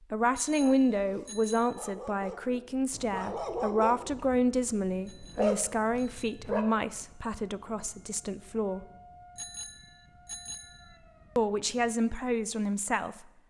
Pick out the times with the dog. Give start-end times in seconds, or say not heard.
0.6-6.7.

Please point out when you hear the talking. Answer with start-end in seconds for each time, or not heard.
0.1-8.8, 11.3-13.2.